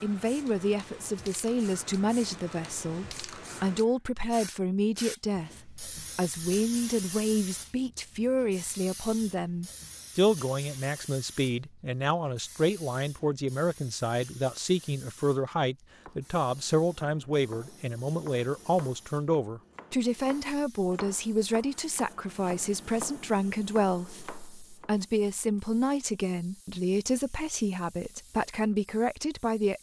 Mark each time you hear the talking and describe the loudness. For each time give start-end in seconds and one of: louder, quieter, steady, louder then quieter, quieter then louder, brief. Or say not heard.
0.0-29.7 steady.